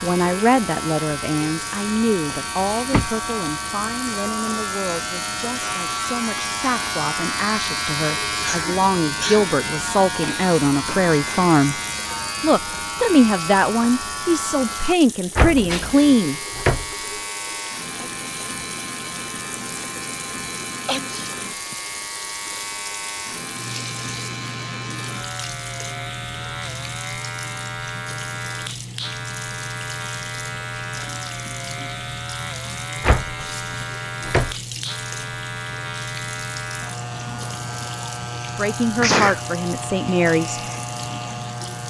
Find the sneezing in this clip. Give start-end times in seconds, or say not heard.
8.4-9.4, 20.9-21.8, 39.0-39.5.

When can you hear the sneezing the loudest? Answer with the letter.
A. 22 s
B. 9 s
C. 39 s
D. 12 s
C.